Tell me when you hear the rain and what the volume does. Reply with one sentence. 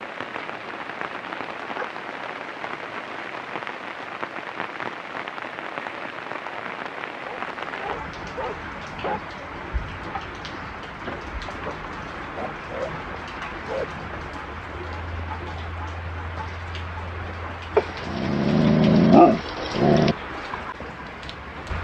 You can hear the rain from 0.0 to 21.7 s, at a steady volume.